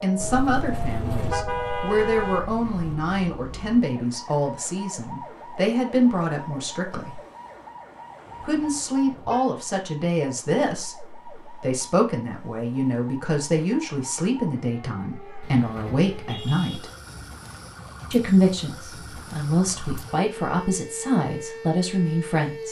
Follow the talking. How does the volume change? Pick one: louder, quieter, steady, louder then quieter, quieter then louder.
steady.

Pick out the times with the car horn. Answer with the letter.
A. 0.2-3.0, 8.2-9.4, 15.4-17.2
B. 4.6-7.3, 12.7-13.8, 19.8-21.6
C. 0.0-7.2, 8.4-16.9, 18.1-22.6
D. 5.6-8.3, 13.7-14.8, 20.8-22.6
A.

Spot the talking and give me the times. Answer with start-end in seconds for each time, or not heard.
0.0-7.2, 8.4-16.9, 18.1-22.6.